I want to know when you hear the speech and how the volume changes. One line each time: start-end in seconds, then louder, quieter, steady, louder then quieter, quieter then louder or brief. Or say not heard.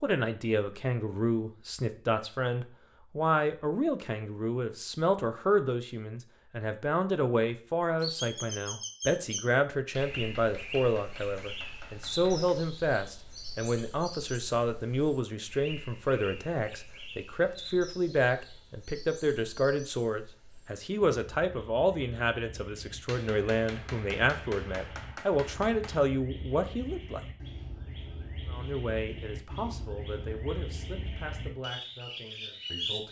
0.0-27.2 steady
28.5-33.0 quieter.